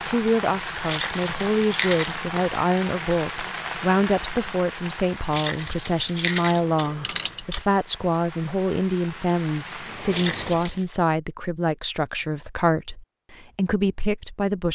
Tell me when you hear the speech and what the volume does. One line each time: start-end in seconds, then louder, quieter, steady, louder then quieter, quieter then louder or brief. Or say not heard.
0.1-14.7 steady.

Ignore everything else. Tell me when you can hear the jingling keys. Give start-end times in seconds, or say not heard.
0.8-2.1, 5.3-7.6, 10.1-10.8.